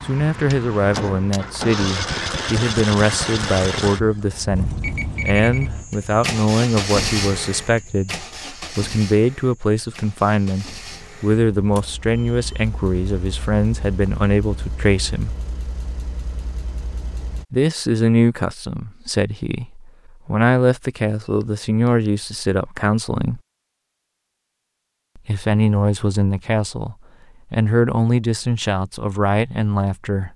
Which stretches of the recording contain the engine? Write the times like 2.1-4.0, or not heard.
0.0-17.4.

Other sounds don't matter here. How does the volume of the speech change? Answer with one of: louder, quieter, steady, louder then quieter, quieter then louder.
steady.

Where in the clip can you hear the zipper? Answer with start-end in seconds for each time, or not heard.
not heard.